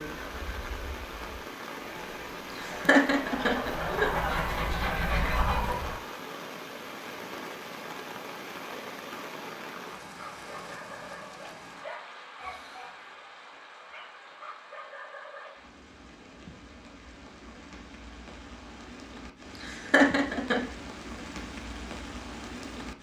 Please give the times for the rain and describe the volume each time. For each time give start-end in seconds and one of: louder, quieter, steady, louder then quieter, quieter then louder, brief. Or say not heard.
0.0-22.9 quieter then louder.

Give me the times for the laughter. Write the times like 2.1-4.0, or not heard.
2.5-4.1, 19.6-20.6.